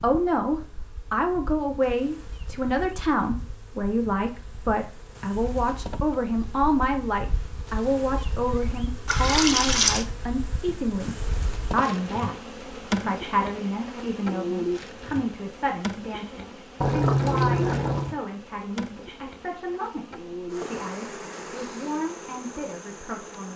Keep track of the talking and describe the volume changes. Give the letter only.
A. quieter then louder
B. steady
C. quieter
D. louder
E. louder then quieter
C.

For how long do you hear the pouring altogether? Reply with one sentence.
The pouring can be heard for 2 seconds in total.